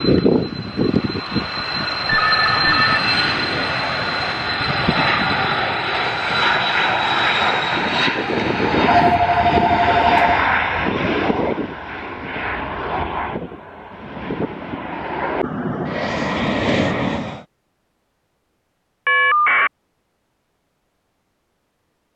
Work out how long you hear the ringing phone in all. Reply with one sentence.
You can hear the ringing phone for 3 seconds altogether.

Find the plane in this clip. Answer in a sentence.
You can hear the plane from 0.0 to 17.4 s.